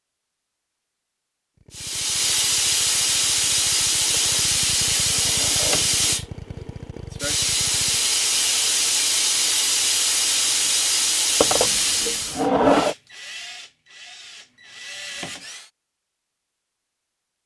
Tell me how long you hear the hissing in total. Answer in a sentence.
You can hear the hissing for 11 seconds altogether.